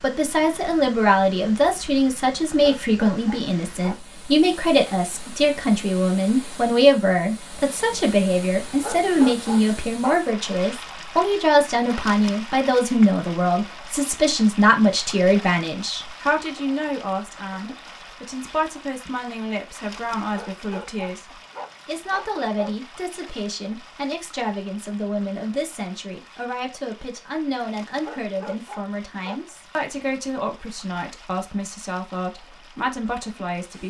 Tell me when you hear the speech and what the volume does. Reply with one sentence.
The speech can be heard from 0.0 to 33.8 s, getting quieter.